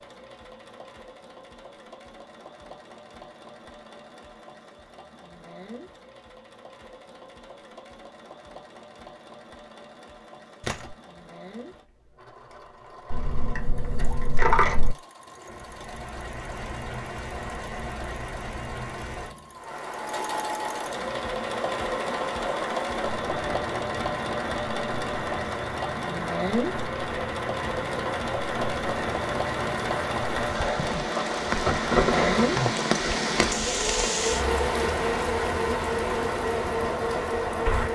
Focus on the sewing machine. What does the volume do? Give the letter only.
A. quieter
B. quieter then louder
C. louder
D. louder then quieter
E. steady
C.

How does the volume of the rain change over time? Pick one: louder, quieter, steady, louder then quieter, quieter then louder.
louder.